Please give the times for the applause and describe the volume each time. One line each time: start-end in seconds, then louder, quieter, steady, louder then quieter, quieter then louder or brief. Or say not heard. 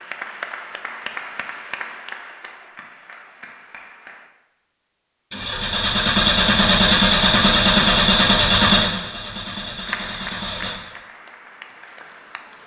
0.0-4.2 quieter
9.8-12.6 brief.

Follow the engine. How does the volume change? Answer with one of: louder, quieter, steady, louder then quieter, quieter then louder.
quieter.